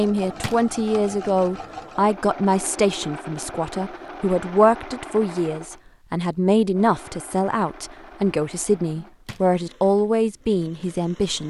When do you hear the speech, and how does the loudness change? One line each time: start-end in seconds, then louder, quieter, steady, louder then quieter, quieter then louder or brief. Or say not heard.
0.0-11.4 steady.